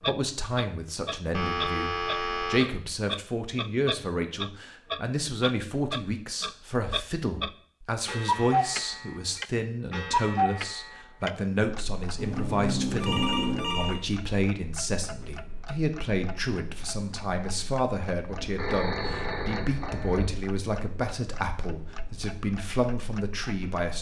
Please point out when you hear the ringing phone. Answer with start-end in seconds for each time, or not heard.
1.3-2.6, 12.2-14.0, 18.2-20.3.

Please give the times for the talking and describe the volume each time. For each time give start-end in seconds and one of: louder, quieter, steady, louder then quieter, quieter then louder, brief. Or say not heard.
0.1-23.9 steady.